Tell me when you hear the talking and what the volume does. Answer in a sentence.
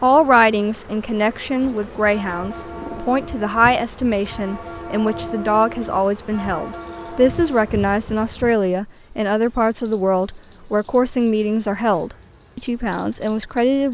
The talking can be heard from 0.0 to 13.8 s, at a steady volume.